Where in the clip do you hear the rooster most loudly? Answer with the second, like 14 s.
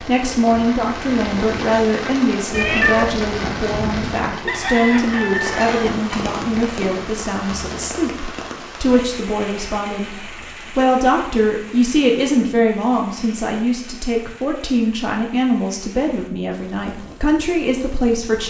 5 s.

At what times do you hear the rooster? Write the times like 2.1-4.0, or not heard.
4.5-6.3.